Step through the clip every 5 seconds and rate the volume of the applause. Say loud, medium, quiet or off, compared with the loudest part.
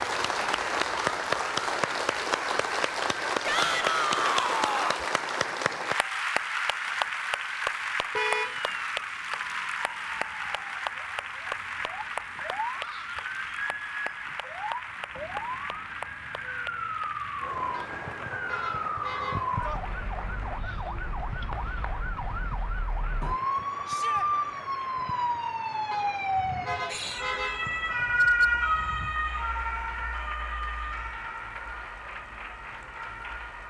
loud, loud, medium, medium, quiet, quiet, quiet.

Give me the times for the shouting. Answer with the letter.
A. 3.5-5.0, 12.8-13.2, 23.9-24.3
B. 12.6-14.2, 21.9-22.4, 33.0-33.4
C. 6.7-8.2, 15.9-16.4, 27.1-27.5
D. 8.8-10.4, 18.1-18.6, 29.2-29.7
A.